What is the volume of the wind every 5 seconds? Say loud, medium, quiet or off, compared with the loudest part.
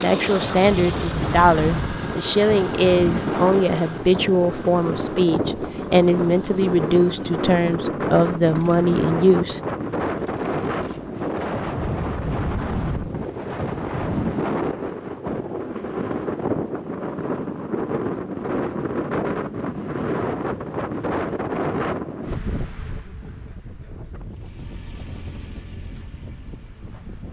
loud, loud, loud, loud, loud, quiet.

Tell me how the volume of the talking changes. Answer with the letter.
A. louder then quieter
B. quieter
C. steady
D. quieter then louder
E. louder
C.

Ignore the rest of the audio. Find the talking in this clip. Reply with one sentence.
The talking can be heard from 0.0 to 9.6 s.